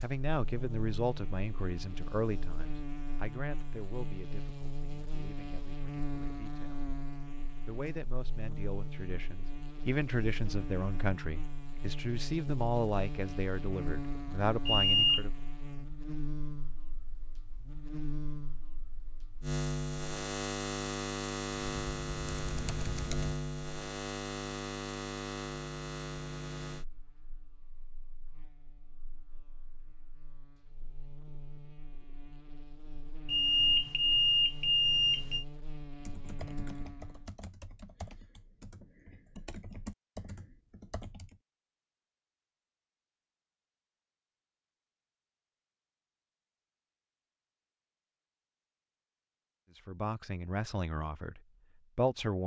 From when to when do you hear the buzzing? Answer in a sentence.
You can hear the buzzing from 0.0 to 37.3 s.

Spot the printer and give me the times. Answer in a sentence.
You can't hear the printer here.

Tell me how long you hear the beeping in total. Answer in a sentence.
The beeping can be heard for 3 seconds in total.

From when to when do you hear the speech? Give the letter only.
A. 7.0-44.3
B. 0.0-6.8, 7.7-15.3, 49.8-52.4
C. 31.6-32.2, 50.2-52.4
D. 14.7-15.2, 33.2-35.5
B.